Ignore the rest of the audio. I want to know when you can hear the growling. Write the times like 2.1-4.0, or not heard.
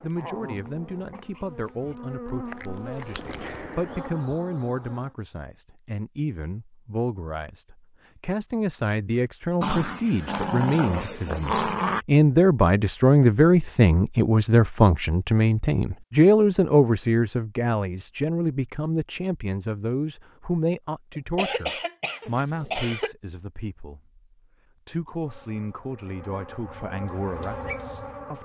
0.1-2.0, 9.6-12.1, 22.2-22.9.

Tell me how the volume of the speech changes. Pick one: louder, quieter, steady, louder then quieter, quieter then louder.
louder then quieter.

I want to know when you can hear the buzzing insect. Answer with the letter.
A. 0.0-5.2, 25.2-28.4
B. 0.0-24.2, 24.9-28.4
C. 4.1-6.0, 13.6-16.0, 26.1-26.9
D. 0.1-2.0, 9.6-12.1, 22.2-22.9
A.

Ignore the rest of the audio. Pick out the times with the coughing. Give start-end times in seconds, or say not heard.
21.1-23.1.